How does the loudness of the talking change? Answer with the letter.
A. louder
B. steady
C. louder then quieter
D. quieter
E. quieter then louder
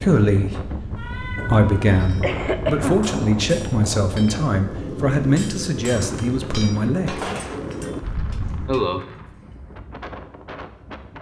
B.